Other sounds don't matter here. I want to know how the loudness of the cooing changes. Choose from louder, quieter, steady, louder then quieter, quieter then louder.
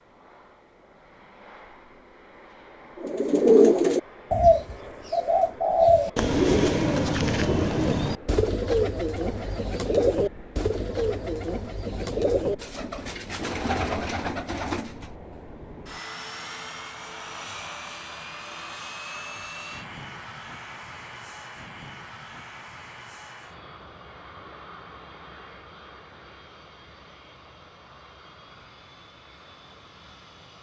quieter.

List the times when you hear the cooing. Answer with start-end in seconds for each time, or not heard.
3.0-15.4.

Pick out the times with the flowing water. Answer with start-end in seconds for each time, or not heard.
not heard.